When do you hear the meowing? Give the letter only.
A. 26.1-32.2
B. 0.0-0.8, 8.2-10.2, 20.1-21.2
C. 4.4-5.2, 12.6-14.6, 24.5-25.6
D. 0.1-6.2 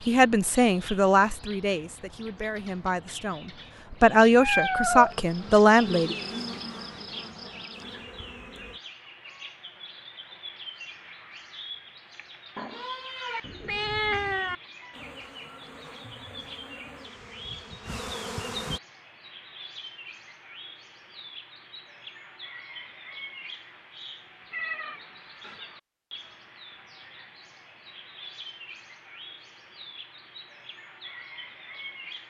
C.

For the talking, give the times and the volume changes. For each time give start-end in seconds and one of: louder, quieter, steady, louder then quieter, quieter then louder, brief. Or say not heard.
0.1-6.2 quieter then louder.